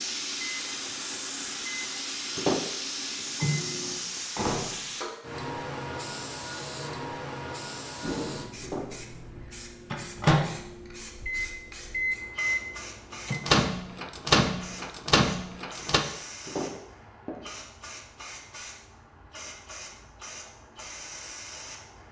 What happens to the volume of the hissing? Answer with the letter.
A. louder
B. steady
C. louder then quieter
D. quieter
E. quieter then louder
D.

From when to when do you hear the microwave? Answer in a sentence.
The microwave can be heard from 0.0 to 4.8 s and from 8.0 to 16.1 s.